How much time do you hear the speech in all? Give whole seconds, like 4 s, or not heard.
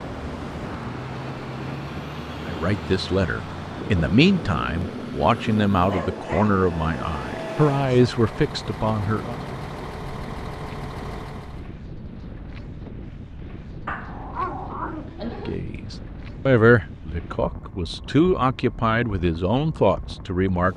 12 s.